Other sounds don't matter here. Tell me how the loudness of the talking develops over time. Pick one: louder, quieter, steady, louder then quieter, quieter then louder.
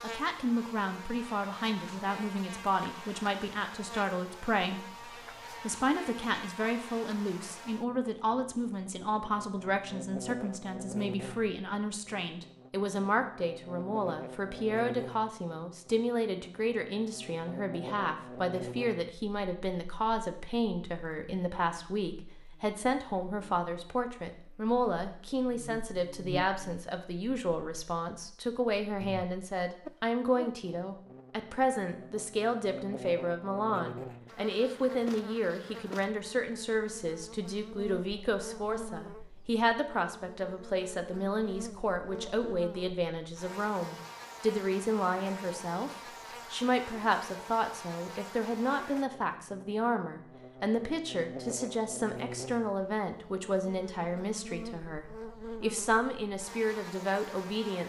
steady.